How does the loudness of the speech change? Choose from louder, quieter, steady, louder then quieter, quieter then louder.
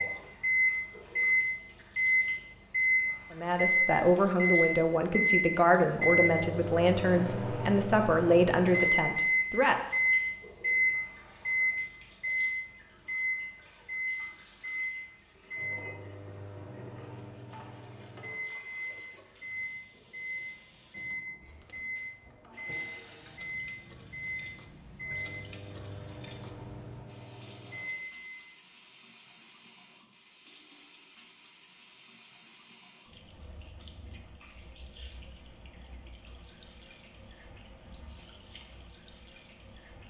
steady.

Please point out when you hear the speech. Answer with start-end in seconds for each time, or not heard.
3.3-9.8.